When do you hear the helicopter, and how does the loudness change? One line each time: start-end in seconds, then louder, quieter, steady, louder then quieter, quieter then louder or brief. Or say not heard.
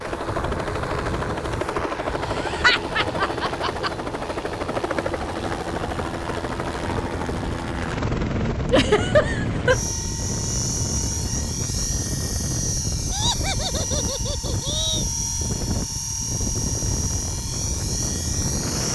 0.0-18.8 steady.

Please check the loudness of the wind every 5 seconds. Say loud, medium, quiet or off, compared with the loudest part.
medium, loud, loud, loud.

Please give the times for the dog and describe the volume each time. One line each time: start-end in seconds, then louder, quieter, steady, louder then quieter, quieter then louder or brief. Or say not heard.
not heard.